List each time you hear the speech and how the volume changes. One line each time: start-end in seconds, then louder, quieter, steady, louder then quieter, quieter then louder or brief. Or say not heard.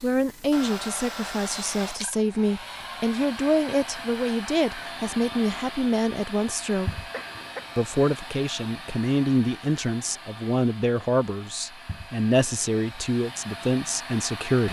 0.0-7.1 steady
7.8-14.6 steady.